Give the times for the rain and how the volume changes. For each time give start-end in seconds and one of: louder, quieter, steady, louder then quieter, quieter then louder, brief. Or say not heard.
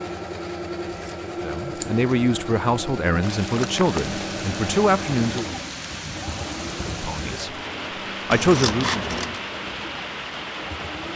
3.2-11.1 steady.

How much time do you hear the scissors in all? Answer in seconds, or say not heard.
2 s.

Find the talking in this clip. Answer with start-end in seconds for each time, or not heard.
1.4-5.5, 7.0-7.5, 8.2-9.0.